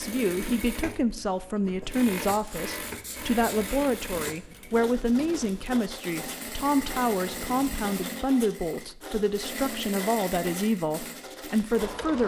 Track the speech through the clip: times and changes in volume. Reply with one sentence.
You can hear the speech from 0.0 to 12.2 s, at a steady volume.